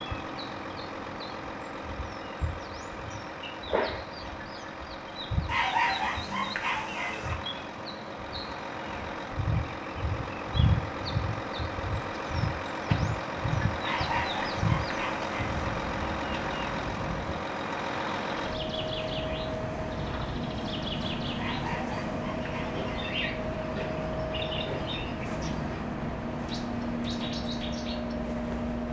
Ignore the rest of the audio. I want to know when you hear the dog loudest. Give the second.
6 s.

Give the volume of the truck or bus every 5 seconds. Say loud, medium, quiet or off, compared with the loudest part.
medium, medium, loud, loud, loud, loud.